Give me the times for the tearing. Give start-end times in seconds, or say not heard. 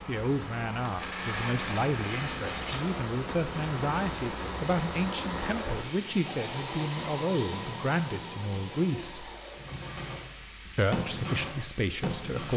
0.8-2.8.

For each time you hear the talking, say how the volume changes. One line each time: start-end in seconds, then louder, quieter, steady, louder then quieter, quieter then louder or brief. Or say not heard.
0.1-9.3 steady
10.8-12.5 brief.